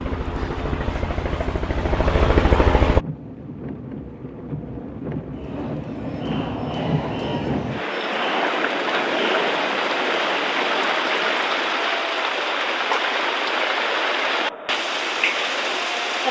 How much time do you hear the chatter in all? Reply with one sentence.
The chatter can be heard for 11 seconds in total.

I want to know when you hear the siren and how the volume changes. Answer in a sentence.
You can't hear the siren here.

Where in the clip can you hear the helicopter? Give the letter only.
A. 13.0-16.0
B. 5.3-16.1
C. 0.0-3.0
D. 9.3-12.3
C.